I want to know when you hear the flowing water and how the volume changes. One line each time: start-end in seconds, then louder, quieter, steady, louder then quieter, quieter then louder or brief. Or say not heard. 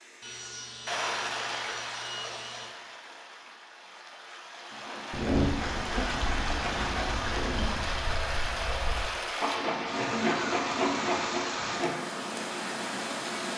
0.0-13.5 quieter then louder.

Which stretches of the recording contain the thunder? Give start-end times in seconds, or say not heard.
5.1-9.1.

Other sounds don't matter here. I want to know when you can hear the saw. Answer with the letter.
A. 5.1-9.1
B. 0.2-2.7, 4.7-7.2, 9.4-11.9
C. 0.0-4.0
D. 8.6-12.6
B.